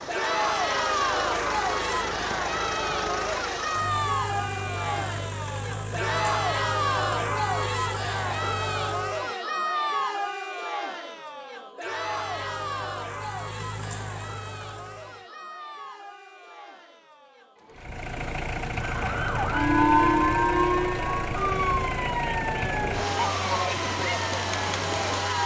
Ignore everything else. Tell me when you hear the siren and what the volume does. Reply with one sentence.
You can hear the siren from 18.8 to 25.4 s, getting quieter.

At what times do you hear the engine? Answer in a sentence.
The engine can be heard from 0.0 to 9.3 s, from 11.8 to 15.2 s and from 17.7 to 25.4 s.